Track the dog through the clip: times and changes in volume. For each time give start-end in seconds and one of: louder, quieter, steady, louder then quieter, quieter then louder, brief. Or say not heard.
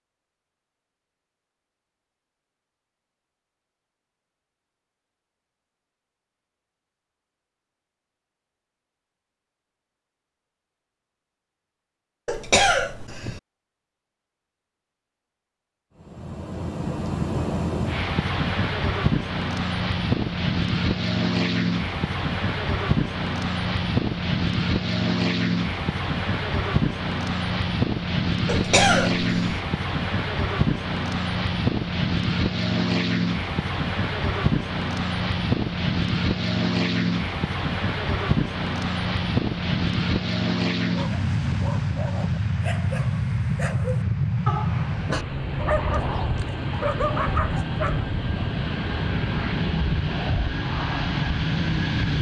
40.9-48.0 louder.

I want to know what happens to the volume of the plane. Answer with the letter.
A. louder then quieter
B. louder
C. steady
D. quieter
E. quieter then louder
C.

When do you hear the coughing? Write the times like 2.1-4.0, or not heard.
12.2-13.4, 28.4-29.6.